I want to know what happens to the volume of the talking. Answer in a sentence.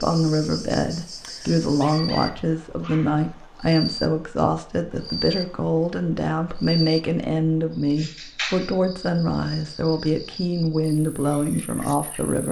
The loudness of the talking stays about the same.